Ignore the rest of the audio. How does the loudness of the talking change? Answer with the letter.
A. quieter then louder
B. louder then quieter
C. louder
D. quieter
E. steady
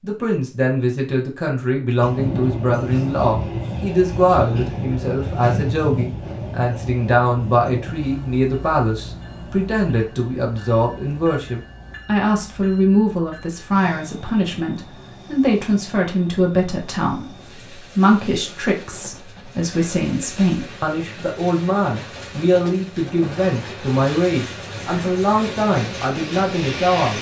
E.